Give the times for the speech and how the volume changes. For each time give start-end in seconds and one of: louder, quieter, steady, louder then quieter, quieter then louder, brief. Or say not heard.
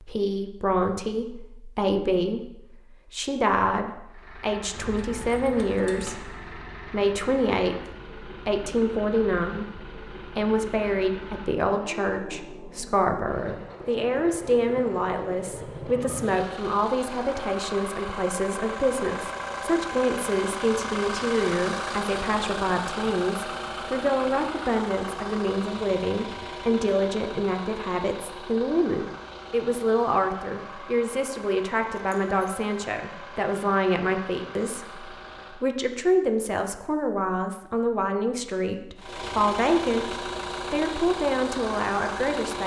0.0-42.6 steady.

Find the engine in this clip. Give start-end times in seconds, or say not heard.
4.0-35.7, 39.0-42.6.